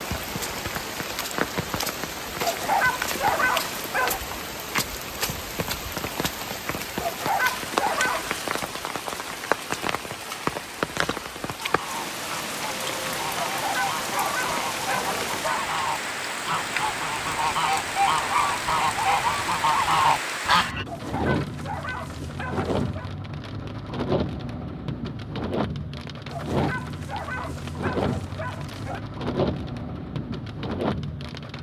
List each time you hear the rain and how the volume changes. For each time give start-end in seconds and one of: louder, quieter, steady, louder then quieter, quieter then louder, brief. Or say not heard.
0.0-31.5 steady.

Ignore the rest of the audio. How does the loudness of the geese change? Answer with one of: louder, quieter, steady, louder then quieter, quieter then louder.
louder.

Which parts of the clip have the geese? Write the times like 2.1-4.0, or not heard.
11.6-20.9.